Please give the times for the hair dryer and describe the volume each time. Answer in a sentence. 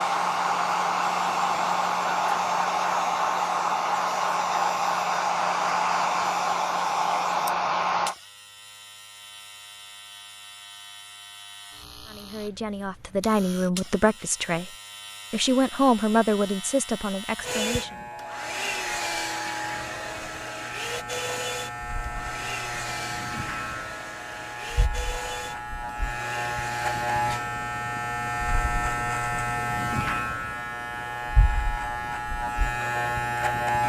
You can hear the hair dryer from 0.0 to 8.2 s, at a steady volume; and from 17.4 to 27.4 s, getting quieter.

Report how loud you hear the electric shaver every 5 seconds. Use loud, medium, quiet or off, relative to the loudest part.
quiet, quiet, quiet, medium, medium, loud, loud.